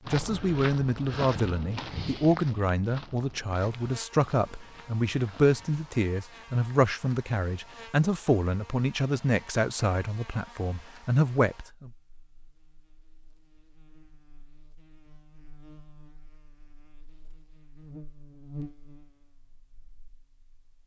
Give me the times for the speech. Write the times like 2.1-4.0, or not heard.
0.1-11.9.